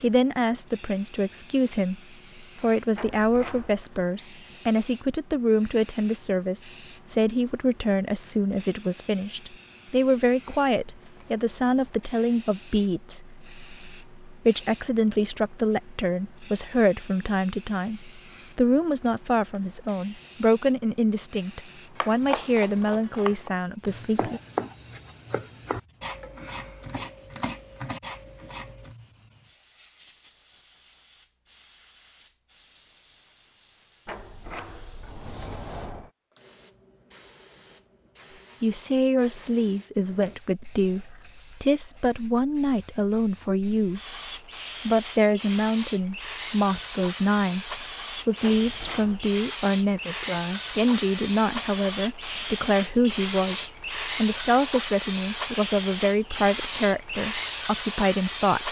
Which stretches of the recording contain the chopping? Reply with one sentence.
You can hear the chopping from 21.9 to 28.9 s.